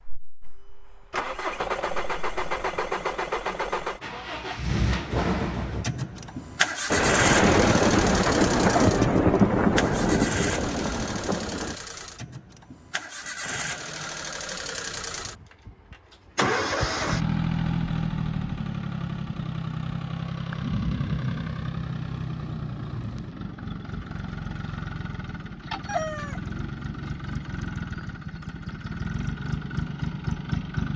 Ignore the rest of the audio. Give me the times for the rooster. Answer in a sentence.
The rooster can be heard from 8.7 to 9.2 s and from 25.9 to 26.4 s.